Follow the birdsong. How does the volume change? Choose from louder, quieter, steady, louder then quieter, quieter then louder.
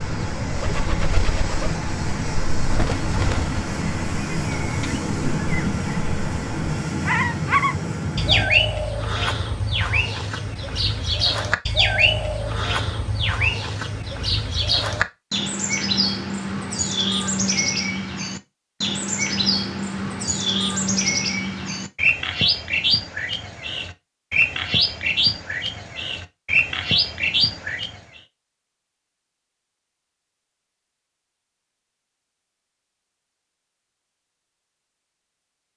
louder.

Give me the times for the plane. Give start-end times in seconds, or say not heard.
0.0-8.4.